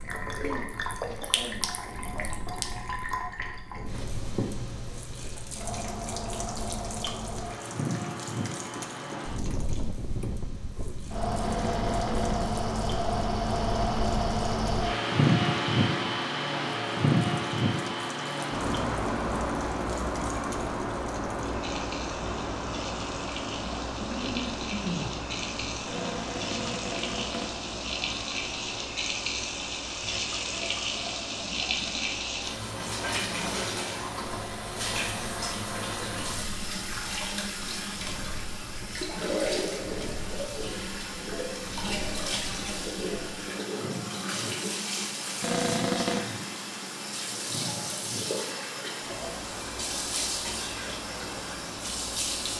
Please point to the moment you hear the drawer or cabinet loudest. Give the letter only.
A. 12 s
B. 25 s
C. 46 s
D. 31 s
C.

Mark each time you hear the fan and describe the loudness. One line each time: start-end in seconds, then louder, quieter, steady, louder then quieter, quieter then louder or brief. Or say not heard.
0.0-52.5 louder then quieter.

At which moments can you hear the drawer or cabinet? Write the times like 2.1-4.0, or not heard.
11.4-12.5, 25.9-27.6, 45.4-46.2.